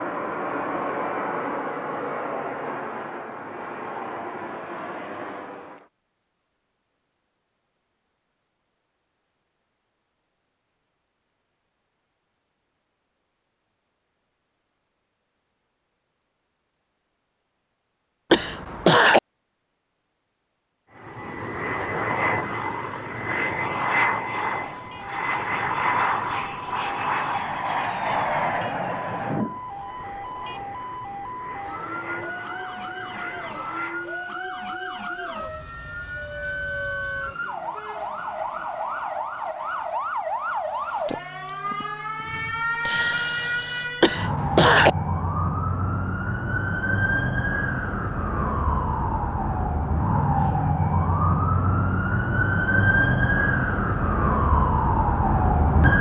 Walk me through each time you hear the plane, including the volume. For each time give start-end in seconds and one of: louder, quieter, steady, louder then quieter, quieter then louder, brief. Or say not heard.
0.0-5.8 quieter
20.9-34.2 quieter.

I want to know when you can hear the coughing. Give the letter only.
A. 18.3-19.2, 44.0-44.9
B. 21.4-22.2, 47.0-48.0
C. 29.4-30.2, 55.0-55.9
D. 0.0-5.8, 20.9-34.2
A.